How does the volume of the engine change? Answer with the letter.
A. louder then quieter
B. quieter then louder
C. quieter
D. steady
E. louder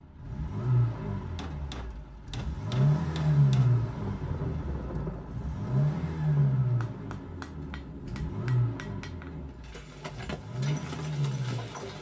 A.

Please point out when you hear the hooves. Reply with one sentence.
The hooves can be heard from 9.4 to 11.9 s.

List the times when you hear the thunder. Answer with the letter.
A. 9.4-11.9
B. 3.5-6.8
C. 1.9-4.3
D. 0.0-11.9
B.